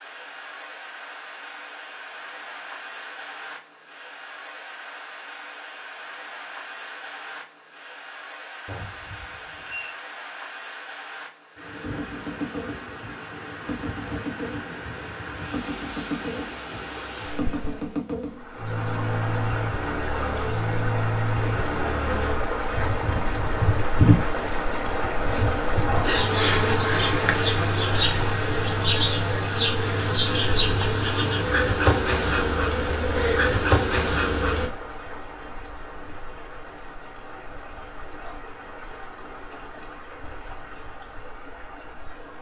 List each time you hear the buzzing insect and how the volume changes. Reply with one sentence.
The buzzing insect can be heard from 11.8 to 34.7 s, getting louder.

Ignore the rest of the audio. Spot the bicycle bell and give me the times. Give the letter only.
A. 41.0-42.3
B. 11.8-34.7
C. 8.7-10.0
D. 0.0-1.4
C.